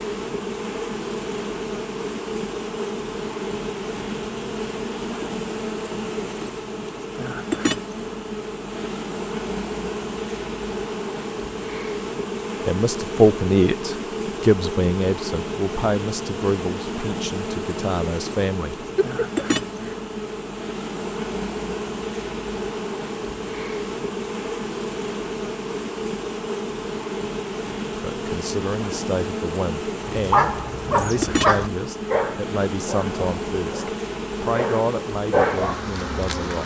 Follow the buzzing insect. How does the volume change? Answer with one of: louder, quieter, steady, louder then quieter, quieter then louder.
steady.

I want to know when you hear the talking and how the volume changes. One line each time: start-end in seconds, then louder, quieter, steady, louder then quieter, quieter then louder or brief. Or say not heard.
12.7-18.9 quieter
27.9-36.6 steady.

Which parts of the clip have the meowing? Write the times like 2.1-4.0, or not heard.
18.8-19.9.